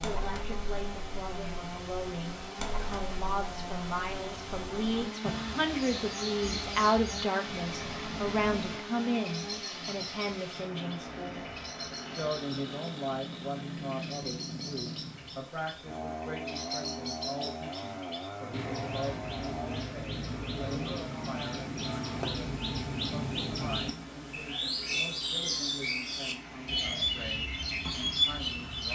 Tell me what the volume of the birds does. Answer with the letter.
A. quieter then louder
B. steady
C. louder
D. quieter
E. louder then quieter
C.